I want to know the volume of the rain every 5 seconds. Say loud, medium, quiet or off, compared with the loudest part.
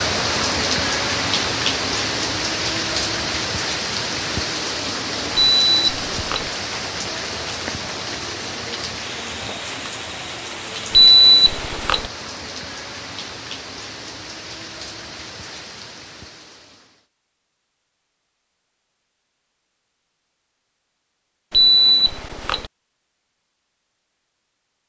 loud, medium, medium, quiet, off.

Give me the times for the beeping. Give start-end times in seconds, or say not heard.
5.3-6.5, 10.9-12.1, 21.5-22.7.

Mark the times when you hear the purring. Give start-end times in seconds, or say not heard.
not heard.